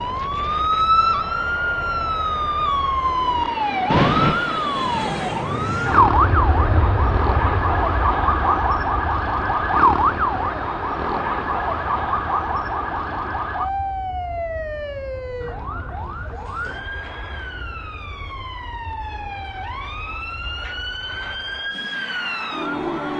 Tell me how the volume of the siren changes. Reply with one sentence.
The volume of the siren goes down.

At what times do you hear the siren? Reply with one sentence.
The siren can be heard from 0.0 to 23.1 s.